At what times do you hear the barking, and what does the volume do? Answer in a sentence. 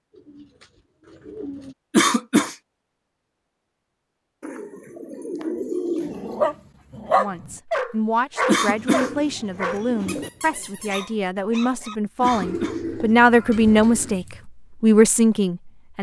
The barking can be heard from 6.0 to 14.4 s, getting quieter.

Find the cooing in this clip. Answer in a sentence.
The cooing can be heard from 0.1 to 1.8 s, from 4.4 to 6.4 s, from 8.7 to 10.3 s and from 12.2 to 14.2 s.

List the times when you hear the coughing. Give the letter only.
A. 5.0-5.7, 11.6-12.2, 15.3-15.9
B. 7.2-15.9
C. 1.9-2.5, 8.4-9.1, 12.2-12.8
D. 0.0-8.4
C.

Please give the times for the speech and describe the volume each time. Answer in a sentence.
The speech can be heard from 7.2 to 15.9 s, getting louder.